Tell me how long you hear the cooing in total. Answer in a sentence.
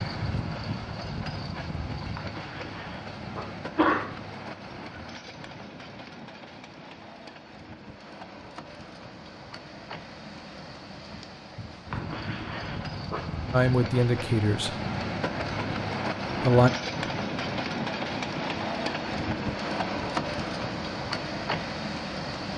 The cooing can't be heard in this clip.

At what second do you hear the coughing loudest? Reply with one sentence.
The volume of the coughing peaks at 4 seconds.